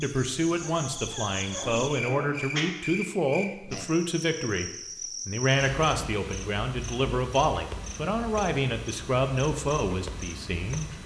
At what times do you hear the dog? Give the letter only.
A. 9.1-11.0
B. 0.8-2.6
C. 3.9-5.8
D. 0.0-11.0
B.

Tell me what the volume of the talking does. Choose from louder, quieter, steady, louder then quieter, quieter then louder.
steady.